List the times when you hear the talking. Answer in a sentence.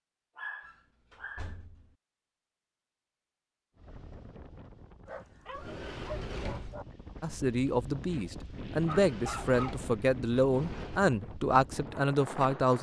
You can hear the talking from 7.2 to 12.7 s.